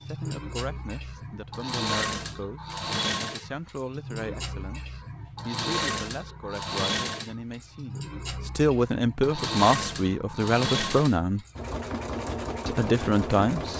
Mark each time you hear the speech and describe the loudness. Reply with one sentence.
The speech can be heard from 0.0 to 11.4 s, getting louder; and briefly from 12.7 to 13.7 s.